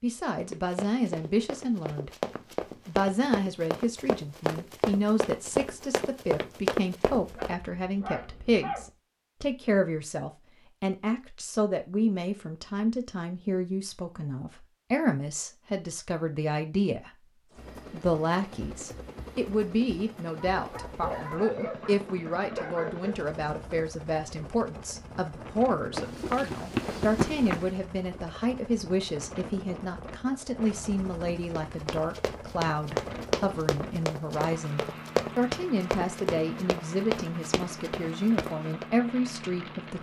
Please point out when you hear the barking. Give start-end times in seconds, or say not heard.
7.2-8.9, 20.5-23.2.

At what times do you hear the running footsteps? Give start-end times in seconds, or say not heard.
0.4-7.5, 25.9-27.8, 31.6-38.9.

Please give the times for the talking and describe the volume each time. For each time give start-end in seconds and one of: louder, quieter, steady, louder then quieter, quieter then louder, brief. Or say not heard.
0.0-2.1 brief
2.9-39.9 steady.